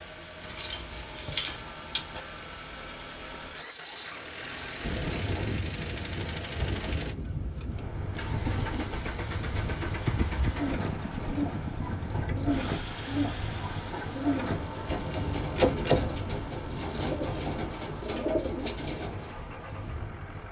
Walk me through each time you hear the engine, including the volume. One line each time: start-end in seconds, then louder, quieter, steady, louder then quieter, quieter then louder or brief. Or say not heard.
0.0-20.4 louder then quieter.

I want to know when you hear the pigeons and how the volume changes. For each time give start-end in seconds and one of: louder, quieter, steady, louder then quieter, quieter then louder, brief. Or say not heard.
10.4-19.4 louder.